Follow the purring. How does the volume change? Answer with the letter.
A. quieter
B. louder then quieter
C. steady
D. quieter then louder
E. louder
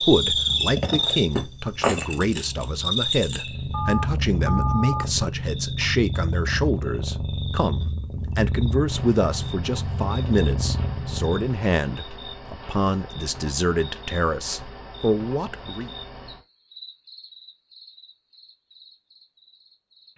E.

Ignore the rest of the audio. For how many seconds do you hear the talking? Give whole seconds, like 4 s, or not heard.
16 s.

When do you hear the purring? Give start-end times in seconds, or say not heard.
0.2-11.4.